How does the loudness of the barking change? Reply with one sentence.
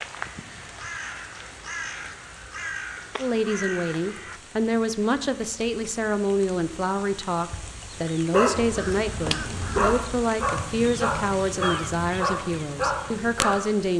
The loudness of the barking goes up.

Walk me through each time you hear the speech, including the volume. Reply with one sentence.
You can hear the speech from 3.1 to 13.9 s, at a steady volume.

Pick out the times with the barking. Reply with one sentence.
The barking can be heard from 8.3 to 13.6 s.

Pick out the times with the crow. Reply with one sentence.
You can hear the crow from 0.0 to 4.4 s and from 8.7 to 13.7 s.